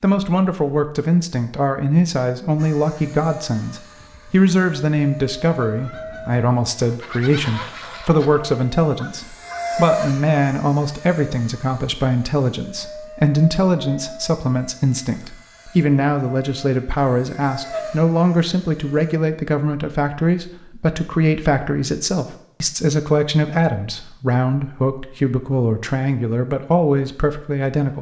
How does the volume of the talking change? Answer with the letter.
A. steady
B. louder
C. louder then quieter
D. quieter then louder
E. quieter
A.